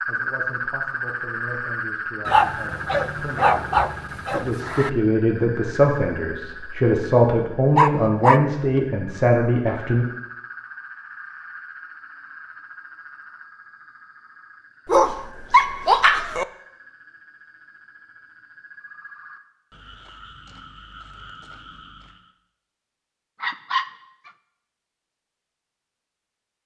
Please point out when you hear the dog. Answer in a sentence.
The dog can be heard from 2.2 to 4.9 s, from 7.8 to 8.8 s, from 14.8 to 16.4 s and from 23.4 to 24.3 s.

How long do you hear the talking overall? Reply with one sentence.
You can hear the talking for 10 seconds altogether.